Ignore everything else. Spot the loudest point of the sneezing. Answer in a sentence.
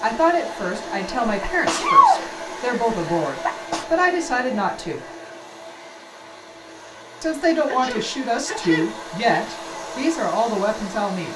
The loudest moment of the sneezing is at 2 seconds.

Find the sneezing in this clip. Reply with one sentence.
You can hear the sneezing from 1.2 to 3.9 s and from 7.7 to 9.6 s.